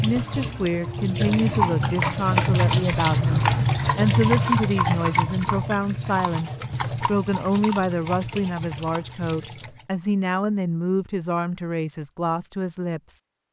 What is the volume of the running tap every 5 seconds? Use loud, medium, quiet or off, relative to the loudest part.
loud, medium, off.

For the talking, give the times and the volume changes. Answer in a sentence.
You can hear the talking from 0.0 to 13.2 s, at a steady volume.